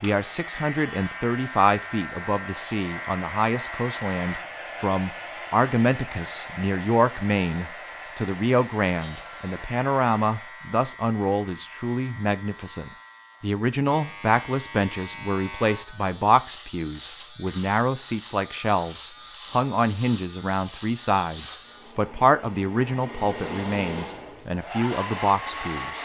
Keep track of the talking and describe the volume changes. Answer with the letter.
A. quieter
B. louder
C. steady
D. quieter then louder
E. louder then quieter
C.